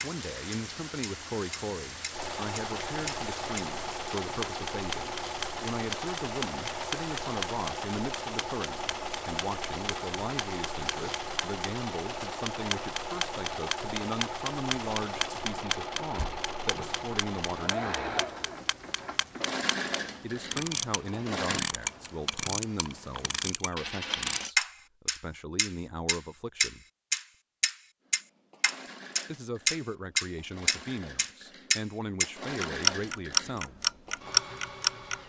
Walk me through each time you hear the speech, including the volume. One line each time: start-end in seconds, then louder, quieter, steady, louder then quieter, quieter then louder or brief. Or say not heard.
0.0-18.2 steady
20.2-26.9 quieter then louder
29.2-33.8 steady.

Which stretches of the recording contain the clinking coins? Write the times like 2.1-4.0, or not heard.
23.8-24.6.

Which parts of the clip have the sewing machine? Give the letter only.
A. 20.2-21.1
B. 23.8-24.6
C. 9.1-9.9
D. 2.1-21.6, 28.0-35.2
D.